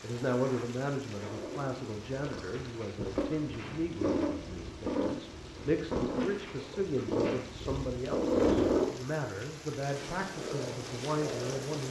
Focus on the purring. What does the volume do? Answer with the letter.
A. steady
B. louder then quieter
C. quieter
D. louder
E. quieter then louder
B.